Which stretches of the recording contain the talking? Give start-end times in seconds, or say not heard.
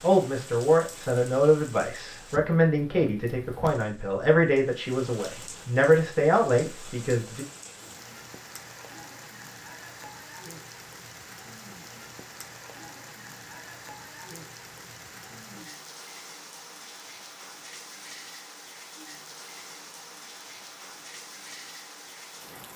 0.0-7.5.